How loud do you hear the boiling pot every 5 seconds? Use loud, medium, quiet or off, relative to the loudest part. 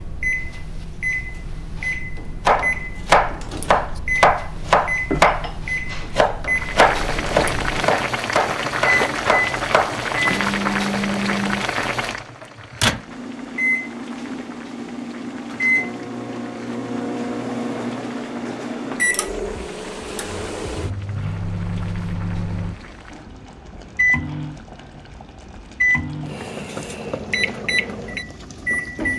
off, loud, loud, quiet, quiet, quiet.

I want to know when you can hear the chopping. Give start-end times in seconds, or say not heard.
2.5-10.0.